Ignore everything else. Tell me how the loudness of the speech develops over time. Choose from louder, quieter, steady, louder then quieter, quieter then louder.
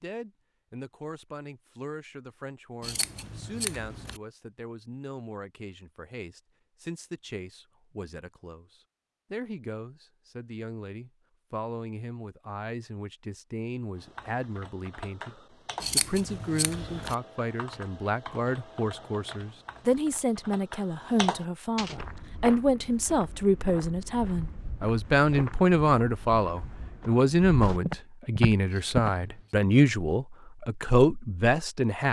louder.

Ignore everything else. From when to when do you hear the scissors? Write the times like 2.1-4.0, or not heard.
2.8-4.2, 15.8-17.1, 28.7-29.6.